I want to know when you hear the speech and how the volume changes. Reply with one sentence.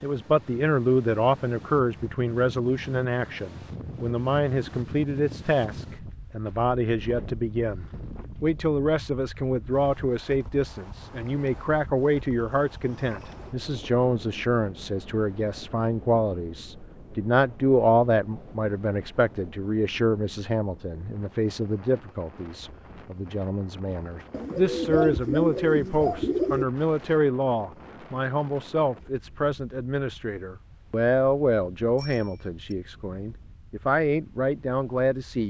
The speech can be heard from 0.0 to 35.4 s, at a steady volume.